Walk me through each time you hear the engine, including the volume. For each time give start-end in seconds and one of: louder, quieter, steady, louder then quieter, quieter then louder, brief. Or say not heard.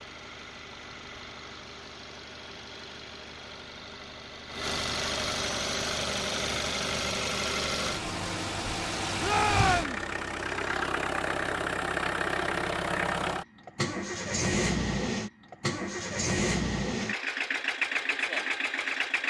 0.0-19.2 louder.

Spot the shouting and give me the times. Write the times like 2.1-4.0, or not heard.
9.2-10.1.